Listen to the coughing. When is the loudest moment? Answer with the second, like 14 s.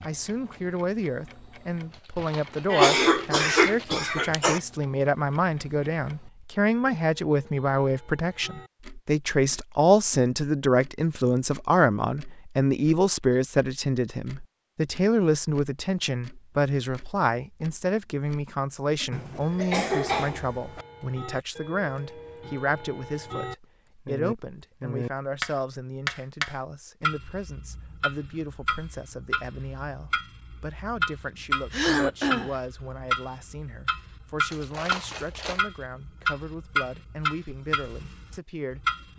3 s.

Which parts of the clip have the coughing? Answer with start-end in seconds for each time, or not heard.
2.7-4.6, 19.1-20.9, 31.7-32.5.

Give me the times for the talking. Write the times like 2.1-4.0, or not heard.
0.0-39.1.